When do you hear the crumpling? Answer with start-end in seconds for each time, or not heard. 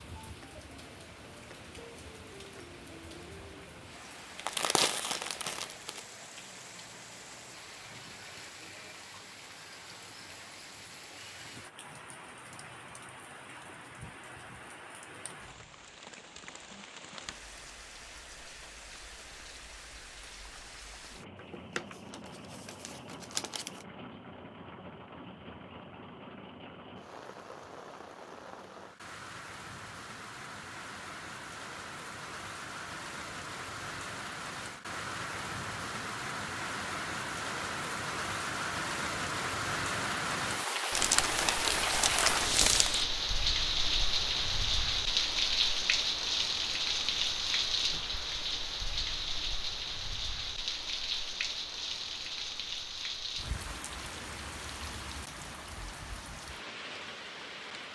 4.3-6.0, 21.4-23.9, 40.9-43.1.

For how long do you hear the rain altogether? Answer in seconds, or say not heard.
58 s.